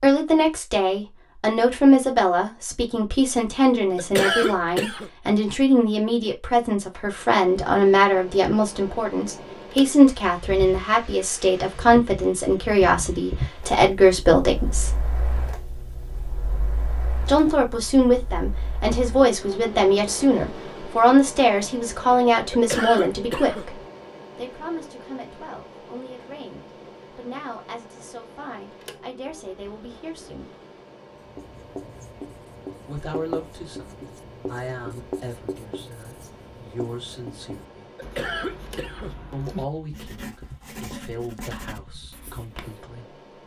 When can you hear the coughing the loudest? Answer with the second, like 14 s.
4 s.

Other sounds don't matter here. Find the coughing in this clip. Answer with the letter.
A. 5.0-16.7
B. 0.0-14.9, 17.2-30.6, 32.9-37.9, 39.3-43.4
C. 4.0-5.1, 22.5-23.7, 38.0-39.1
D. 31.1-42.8
C.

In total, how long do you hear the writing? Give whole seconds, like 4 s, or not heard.
12 s.